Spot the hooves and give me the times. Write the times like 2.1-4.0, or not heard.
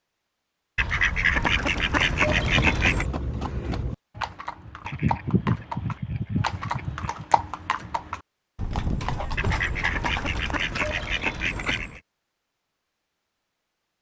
1.9-11.1.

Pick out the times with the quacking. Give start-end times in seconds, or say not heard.
0.8-3.0, 4.8-7.2, 9.3-12.0.